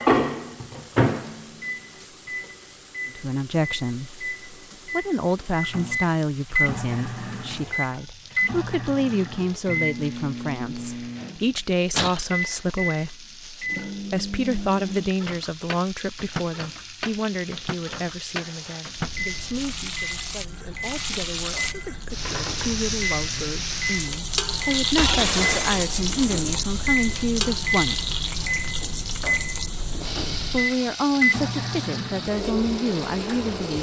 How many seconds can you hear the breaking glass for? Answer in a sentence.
You can hear the breaking glass for 2 seconds altogether.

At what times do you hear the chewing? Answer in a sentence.
The chewing can't be heard in this clip.